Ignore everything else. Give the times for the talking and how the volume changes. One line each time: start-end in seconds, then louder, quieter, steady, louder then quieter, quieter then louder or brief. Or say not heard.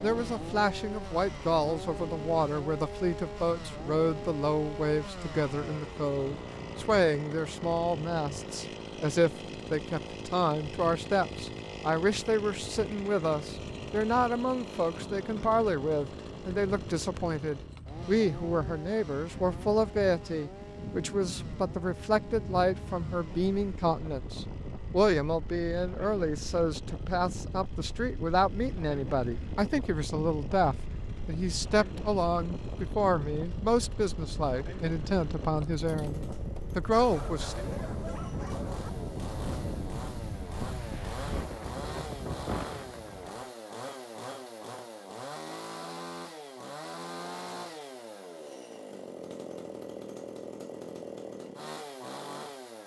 0.0-37.5 steady.